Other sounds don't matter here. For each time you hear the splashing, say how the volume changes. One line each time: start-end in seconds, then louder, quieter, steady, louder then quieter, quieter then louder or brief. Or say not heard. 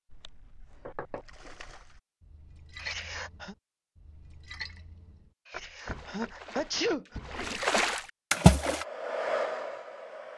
0.1-8.8 louder.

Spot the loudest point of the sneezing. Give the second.
7 s.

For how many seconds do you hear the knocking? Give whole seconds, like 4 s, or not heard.
2 s.